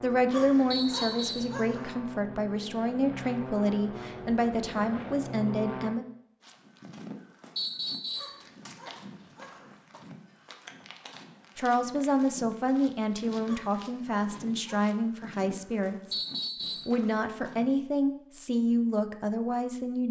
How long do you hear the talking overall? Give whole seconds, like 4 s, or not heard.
14 s.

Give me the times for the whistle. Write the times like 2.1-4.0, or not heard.
0.7-1.6, 7.5-8.4, 16.1-16.9.